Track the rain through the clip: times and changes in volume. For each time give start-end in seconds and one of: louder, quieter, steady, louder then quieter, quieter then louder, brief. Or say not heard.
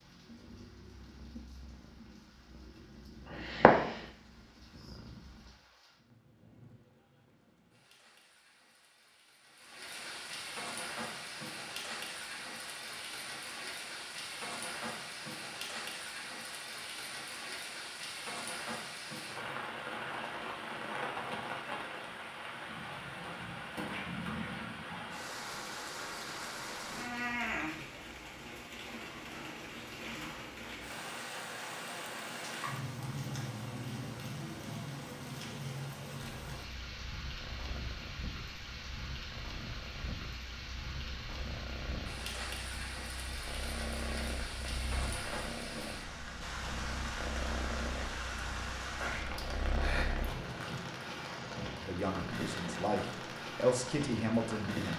0.0-54.9 louder.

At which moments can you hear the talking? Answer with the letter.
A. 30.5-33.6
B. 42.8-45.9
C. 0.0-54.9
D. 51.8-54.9
D.